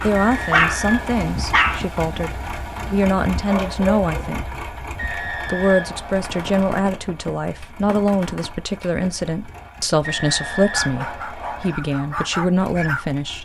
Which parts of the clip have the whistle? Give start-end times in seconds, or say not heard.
0.1-1.2, 5.0-6.5, 10.0-11.8.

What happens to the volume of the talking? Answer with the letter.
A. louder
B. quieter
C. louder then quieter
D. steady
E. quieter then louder
D.